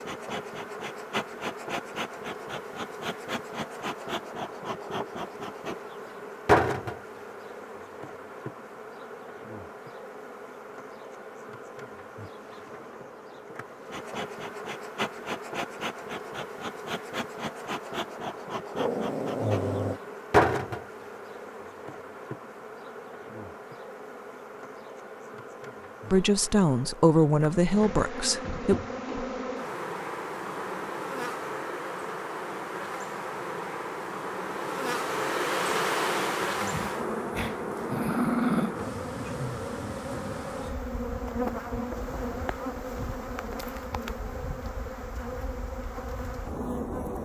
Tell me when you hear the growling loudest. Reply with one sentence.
The loudest moment of the growling is at 38 seconds.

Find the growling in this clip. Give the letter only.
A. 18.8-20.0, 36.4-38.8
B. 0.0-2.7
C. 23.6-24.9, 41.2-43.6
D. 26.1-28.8
A.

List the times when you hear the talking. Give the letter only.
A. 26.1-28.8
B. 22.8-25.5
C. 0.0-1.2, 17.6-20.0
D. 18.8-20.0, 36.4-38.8
A.